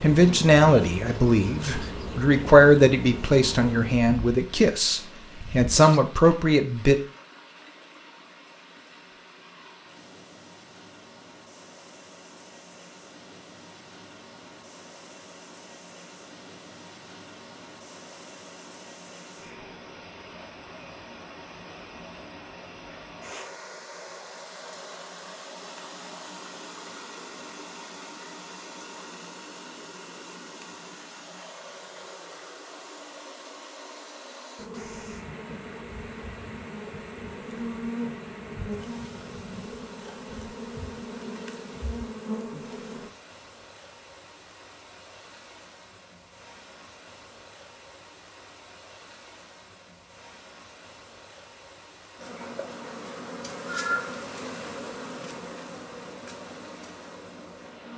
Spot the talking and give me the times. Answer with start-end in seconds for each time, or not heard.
0.0-7.0.